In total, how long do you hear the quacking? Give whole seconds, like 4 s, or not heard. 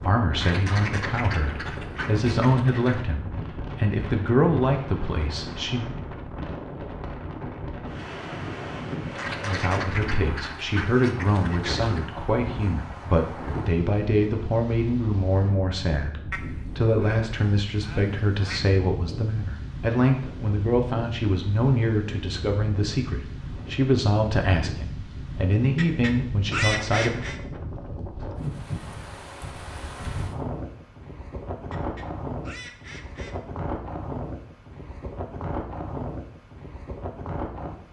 11 s.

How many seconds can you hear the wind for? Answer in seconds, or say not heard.
38 s.